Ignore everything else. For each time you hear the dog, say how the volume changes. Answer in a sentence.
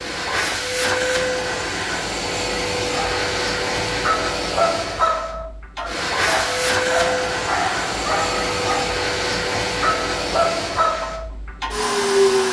The dog can be heard from 2.9 to 11.2 s, at a steady volume.